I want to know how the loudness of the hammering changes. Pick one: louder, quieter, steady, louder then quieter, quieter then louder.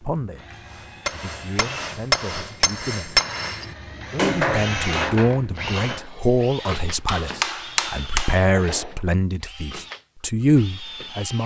quieter then louder.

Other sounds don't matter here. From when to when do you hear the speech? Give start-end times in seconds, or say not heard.
0.0-3.2, 4.1-11.4.